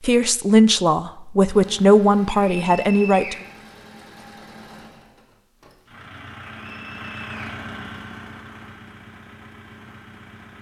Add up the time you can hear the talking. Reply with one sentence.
You can hear the talking for 3 seconds altogether.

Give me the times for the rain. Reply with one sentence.
You can't hear the rain here.